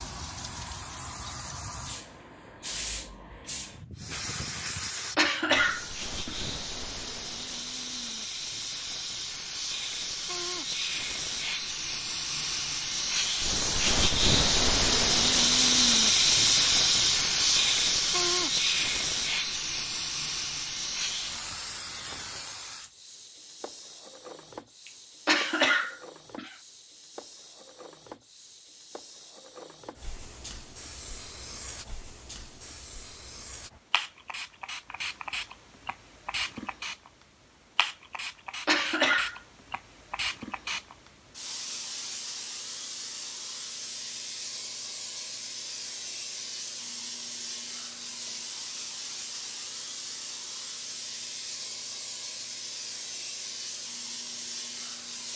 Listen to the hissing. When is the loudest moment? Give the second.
16 s.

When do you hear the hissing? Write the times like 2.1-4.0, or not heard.
0.0-55.3.